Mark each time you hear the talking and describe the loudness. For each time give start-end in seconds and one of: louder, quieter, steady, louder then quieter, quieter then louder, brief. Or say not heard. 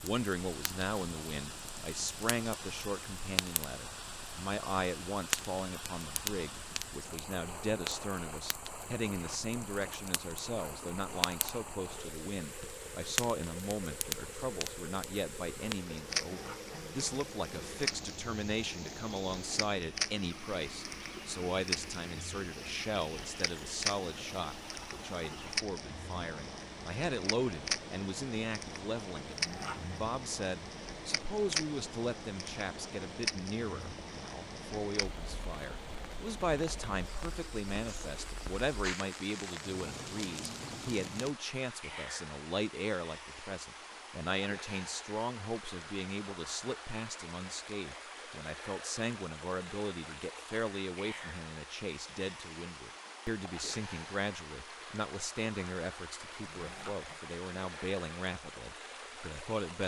0.0-59.8 steady.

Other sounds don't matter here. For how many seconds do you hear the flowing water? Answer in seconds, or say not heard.
60 s.